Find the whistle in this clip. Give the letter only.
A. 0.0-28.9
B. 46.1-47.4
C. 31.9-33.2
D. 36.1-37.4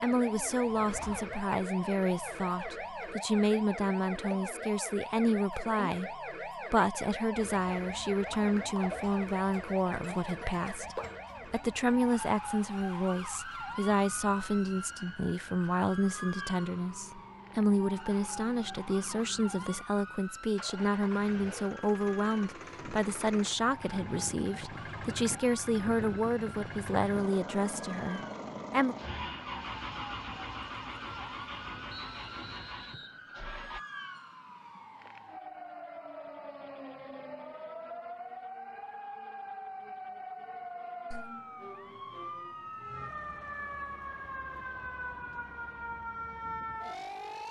C.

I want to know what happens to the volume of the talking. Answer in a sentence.
The volume of the talking stays about the same.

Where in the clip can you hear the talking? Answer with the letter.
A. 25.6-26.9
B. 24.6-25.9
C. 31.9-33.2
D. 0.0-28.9
D.